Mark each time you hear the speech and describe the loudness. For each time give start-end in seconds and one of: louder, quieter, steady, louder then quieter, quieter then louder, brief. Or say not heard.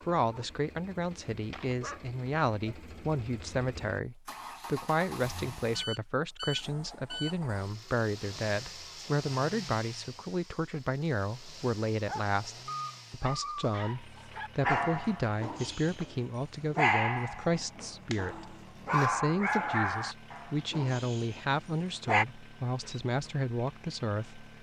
0.1-24.5 steady.